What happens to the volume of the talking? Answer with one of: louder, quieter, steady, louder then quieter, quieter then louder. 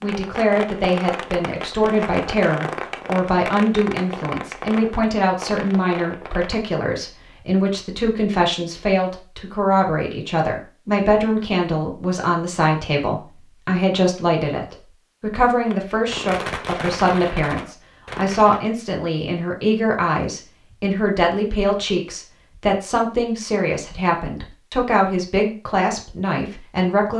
steady.